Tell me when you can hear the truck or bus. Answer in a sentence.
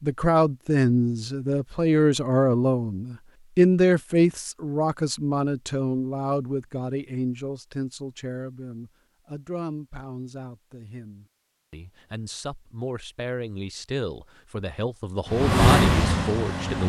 You can hear the truck or bus from 15.2 to 16.8 s.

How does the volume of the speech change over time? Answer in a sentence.
The volume of the speech goes down, then up.